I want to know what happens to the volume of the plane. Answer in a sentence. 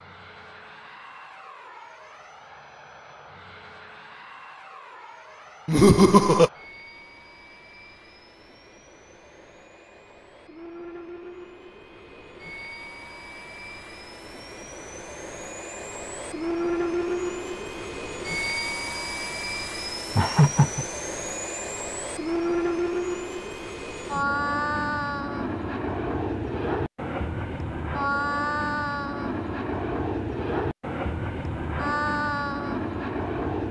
The loudness of the plane goes up.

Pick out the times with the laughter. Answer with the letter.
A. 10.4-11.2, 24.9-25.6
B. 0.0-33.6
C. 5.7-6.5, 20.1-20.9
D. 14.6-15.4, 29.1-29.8
C.